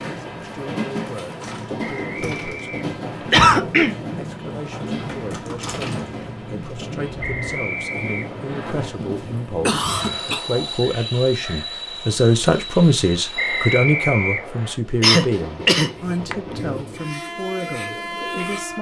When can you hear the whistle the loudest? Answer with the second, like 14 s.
14 s.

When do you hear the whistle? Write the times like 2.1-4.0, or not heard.
1.8-3.3, 7.2-8.8, 13.3-14.8.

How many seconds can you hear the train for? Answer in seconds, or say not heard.
19 s.